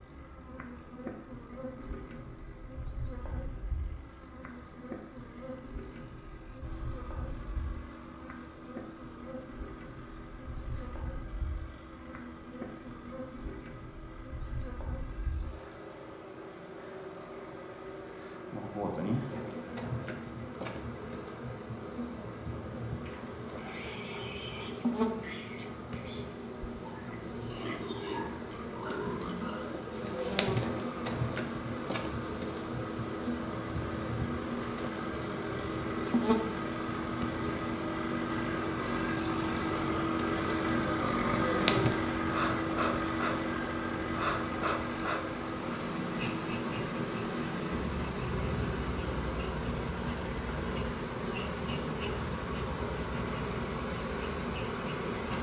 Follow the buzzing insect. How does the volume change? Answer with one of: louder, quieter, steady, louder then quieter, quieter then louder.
louder.